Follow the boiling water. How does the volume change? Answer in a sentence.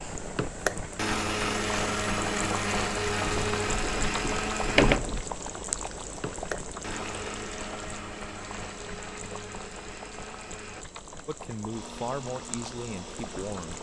The loudness of the boiling water goes down.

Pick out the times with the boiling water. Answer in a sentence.
You can hear the boiling water from 0.0 to 13.7 s.